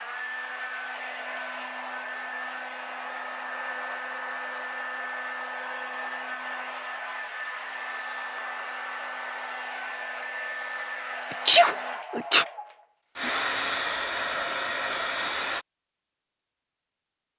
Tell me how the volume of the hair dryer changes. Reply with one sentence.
The loudness of the hair dryer goes up.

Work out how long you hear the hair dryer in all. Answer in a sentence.
The hair dryer can be heard for 16 seconds in total.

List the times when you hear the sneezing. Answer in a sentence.
You can hear the sneezing from 11.4 to 12.4 s.